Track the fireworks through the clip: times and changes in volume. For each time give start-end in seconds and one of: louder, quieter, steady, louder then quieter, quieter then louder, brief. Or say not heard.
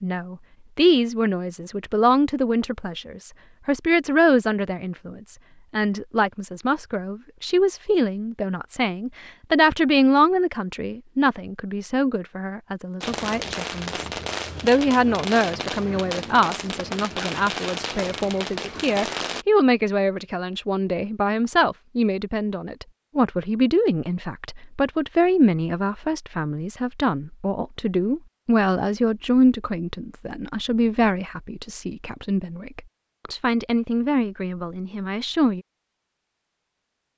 13.0-19.4 steady.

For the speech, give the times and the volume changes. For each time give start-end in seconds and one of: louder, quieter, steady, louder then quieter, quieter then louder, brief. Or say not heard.
0.0-35.6 steady.